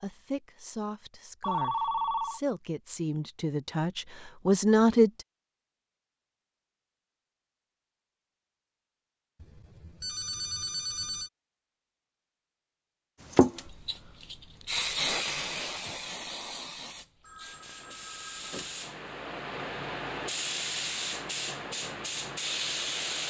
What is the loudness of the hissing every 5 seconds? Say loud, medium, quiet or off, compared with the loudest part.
off, off, loud, medium, loud.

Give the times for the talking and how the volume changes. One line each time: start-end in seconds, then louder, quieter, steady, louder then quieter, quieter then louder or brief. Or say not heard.
0.0-5.2 louder.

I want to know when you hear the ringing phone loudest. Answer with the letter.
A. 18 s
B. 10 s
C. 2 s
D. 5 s
C.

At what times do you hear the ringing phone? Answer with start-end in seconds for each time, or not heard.
1.4-2.4, 9.4-11.3, 17.2-18.9.